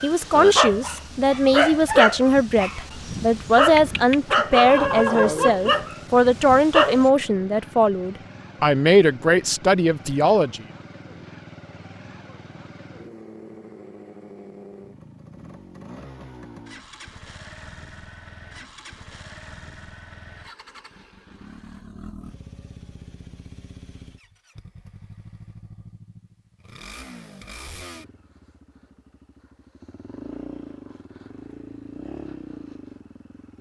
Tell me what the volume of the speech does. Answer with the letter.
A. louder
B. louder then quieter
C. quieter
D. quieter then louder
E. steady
E.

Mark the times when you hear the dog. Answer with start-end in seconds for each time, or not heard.
0.0-7.1.